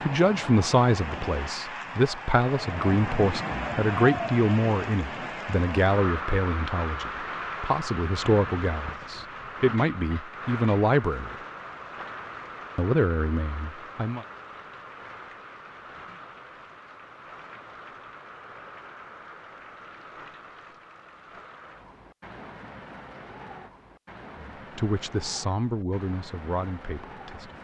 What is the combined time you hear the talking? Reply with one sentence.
The talking can be heard for 16 seconds in total.